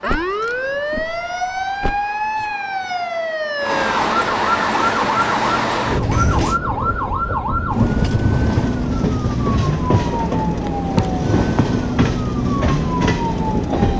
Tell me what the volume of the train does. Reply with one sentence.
The volume of the train goes up.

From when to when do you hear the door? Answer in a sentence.
You can hear the door from 0.1 to 2.5 s, from 5.9 to 6.6 s and from 10.7 to 11.1 s.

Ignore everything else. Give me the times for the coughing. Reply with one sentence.
The coughing can't be heard in this clip.